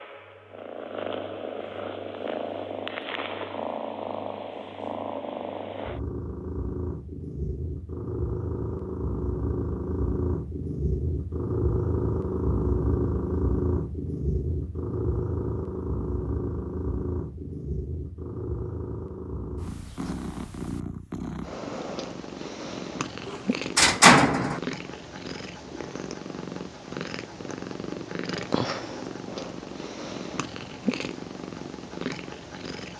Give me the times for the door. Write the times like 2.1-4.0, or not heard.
23.2-24.6.